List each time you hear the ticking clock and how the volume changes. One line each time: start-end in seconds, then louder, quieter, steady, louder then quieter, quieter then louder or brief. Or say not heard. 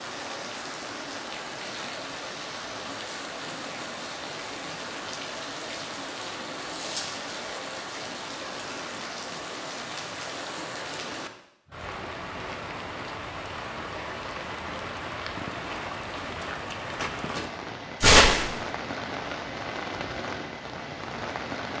not heard.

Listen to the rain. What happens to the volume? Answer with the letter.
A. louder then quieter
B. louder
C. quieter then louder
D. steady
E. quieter
D.